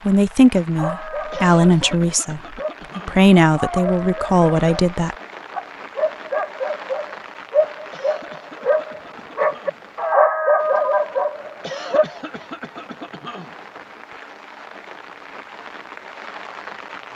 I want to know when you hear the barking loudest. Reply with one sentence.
The volume of the barking peaks at 10 seconds.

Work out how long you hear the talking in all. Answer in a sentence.
You can hear the talking for 5 seconds altogether.